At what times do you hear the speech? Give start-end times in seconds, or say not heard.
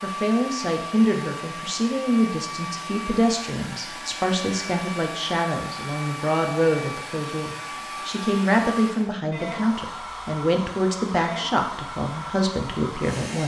0.0-13.4.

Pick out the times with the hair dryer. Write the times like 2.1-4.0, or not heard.
0.0-13.4.